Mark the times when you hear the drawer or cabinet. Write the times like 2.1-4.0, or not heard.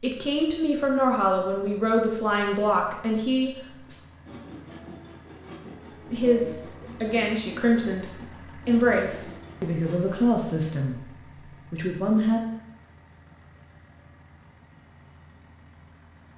not heard.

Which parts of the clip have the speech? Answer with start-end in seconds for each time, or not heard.
0.0-4.0, 6.1-11.1, 11.7-12.4.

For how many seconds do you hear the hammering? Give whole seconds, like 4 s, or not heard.
not heard.